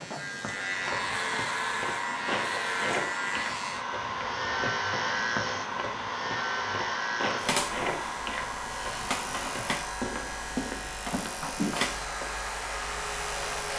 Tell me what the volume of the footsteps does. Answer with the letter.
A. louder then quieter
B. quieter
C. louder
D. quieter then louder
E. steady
E.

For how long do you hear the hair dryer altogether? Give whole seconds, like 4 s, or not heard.
14 s.